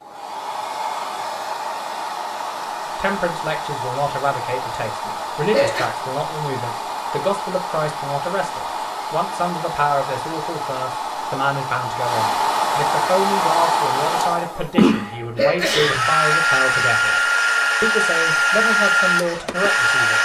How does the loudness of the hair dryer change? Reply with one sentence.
The loudness of the hair dryer goes up.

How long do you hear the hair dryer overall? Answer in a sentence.
You can hear the hair dryer for 20 seconds altogether.